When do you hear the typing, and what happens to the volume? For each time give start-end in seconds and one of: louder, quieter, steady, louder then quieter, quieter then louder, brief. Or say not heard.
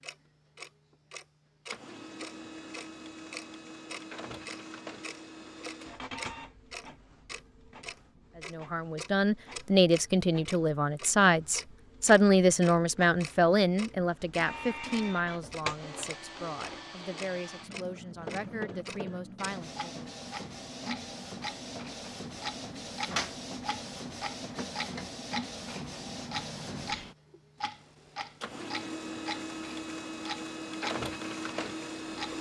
not heard.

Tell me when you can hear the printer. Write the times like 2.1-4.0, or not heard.
0.0-32.3.